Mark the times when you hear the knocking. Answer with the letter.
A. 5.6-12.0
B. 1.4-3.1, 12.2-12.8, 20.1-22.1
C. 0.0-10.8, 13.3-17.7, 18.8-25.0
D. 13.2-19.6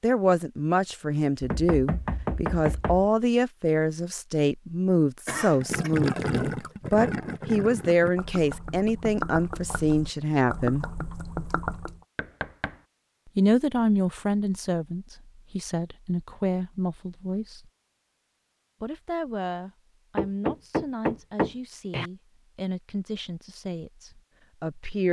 B.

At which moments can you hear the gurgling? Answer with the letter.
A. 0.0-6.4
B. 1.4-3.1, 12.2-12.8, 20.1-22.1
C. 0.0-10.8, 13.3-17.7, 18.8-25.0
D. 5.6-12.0
D.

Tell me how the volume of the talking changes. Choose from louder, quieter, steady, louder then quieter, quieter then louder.
quieter.